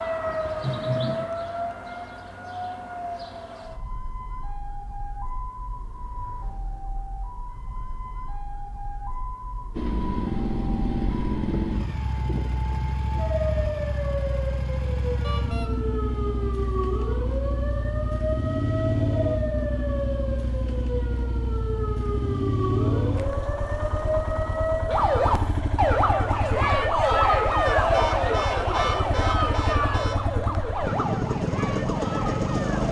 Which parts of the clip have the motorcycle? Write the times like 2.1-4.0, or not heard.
9.8-32.8.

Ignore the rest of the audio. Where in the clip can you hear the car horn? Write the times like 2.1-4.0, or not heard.
0.6-1.4, 15.2-15.7, 27.6-30.2.